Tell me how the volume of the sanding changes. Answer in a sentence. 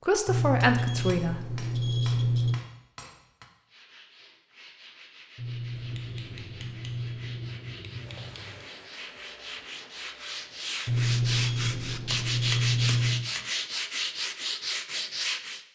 The loudness of the sanding goes up.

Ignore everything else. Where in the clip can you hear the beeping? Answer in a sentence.
The beeping can be heard from 0.2 to 2.6 s, from 5.3 to 7.6 s and from 10.8 to 13.3 s.